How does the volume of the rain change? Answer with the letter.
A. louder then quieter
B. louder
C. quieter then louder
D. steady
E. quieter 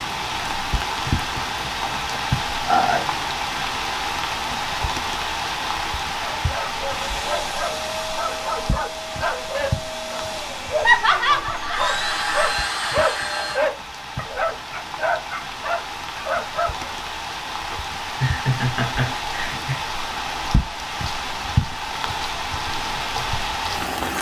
C.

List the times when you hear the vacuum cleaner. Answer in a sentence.
The vacuum cleaner can be heard from 6.8 to 13.7 s.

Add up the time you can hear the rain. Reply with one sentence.
You can hear the rain for 24 seconds altogether.